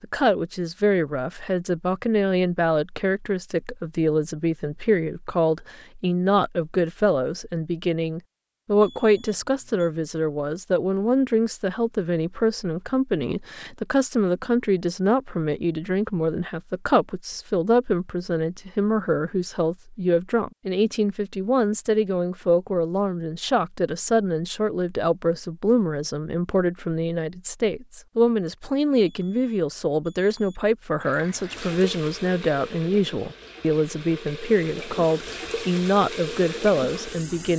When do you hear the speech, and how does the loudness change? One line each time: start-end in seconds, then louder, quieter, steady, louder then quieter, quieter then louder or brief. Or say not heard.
0.0-37.5 steady.